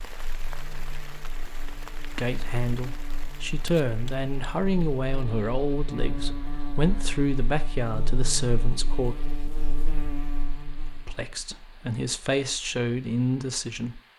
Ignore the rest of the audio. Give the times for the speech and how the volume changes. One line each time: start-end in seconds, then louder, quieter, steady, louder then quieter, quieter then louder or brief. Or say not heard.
2.1-9.2 steady
11.1-14.0 brief.